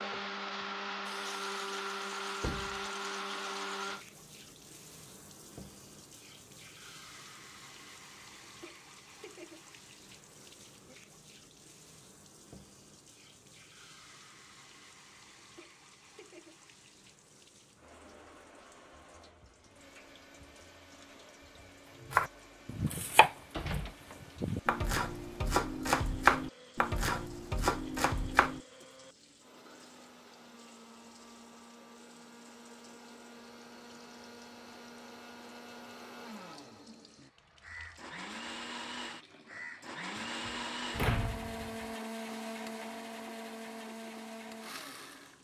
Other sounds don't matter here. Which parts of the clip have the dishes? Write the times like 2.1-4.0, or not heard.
not heard.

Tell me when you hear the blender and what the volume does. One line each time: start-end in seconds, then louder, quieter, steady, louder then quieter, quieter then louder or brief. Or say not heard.
0.0-4.0 steady
19.7-45.3 louder.